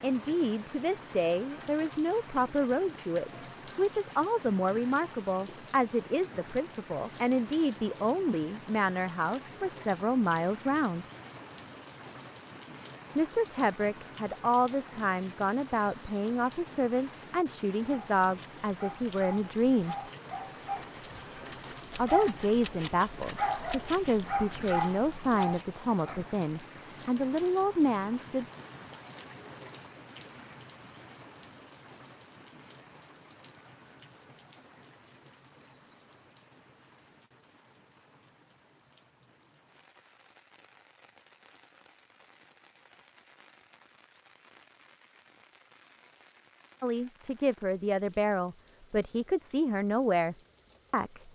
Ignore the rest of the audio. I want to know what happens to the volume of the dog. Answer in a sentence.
The volume of the dog goes up.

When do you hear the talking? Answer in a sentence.
You can hear the talking from 0.0 to 11.1 s, from 13.2 to 19.9 s, from 21.9 to 28.4 s and from 46.8 to 51.3 s.